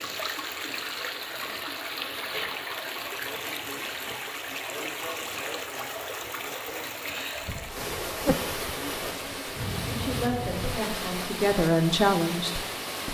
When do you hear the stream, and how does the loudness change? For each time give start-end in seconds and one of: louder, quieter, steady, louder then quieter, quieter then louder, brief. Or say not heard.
0.0-13.0 steady.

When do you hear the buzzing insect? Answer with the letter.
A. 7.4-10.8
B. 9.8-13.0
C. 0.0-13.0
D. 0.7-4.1
A.